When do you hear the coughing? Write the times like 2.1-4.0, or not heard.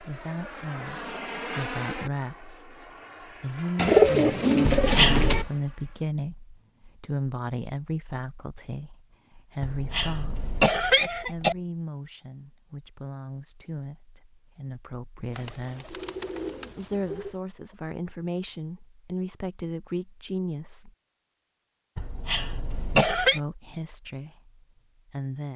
4.7-5.5, 9.6-11.6, 21.9-23.4.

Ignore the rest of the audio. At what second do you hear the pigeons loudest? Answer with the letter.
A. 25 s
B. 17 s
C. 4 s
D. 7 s
C.